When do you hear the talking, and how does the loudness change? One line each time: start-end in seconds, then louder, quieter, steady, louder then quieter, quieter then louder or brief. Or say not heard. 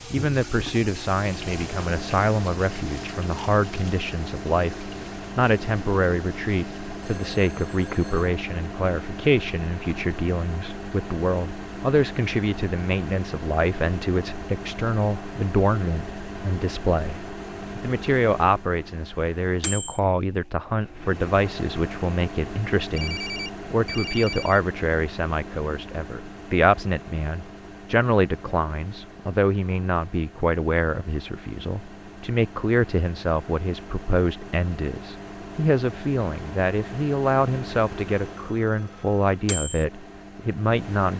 0.1-41.1 steady.